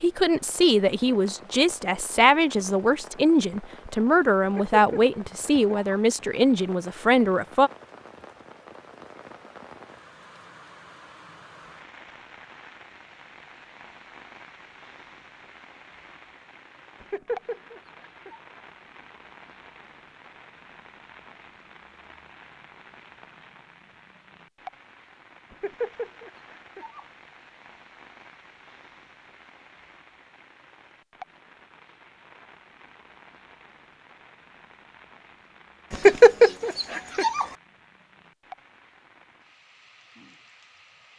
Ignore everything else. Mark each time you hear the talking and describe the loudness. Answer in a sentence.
The talking can be heard from 0.0 to 7.7 s, at a steady volume.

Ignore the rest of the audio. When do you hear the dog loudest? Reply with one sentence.
The loudest moment of the dog is at 36 seconds.